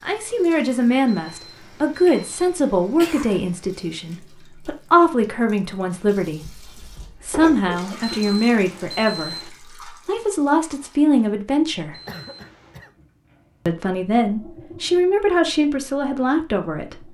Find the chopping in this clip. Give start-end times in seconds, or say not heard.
not heard.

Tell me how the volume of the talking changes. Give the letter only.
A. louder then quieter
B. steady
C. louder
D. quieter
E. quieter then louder
B.